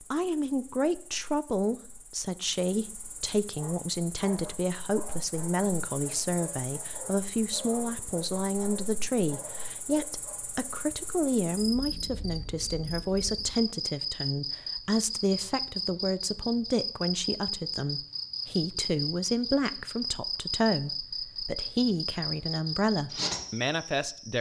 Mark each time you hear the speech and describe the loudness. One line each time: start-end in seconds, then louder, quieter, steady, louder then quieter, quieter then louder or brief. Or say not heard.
0.1-24.3 steady.